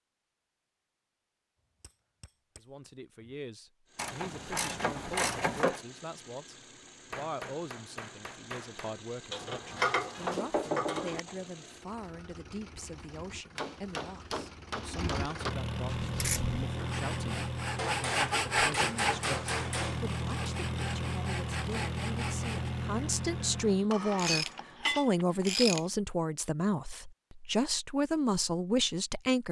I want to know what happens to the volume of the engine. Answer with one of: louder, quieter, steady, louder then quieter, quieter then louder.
louder.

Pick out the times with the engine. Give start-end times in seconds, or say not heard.
3.9-23.9.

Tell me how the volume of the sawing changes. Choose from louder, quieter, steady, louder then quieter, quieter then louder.
louder then quieter.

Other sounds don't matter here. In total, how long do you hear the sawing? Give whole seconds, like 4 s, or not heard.
7 s.